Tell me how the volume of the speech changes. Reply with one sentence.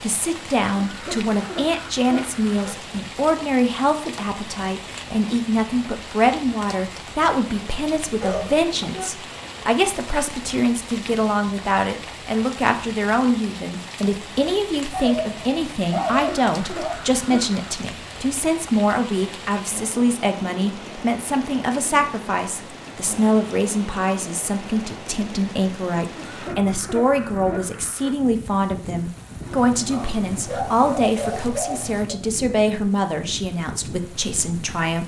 The loudness of the speech stays about the same.